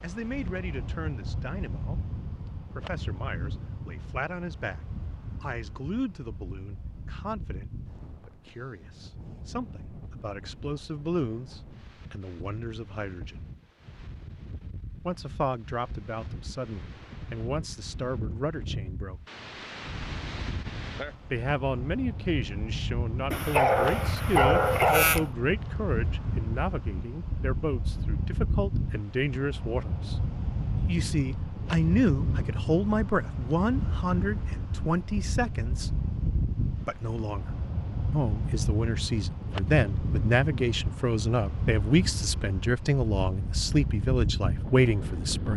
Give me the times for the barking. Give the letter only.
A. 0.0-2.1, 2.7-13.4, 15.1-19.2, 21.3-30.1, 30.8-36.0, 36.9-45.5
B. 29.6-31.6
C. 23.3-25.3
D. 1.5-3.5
C.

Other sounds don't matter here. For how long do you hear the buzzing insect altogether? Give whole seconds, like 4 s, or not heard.
not heard.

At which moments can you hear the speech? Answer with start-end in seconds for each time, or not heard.
0.0-2.1, 2.7-13.4, 15.1-19.2, 21.3-30.1, 30.8-36.0, 36.9-45.5.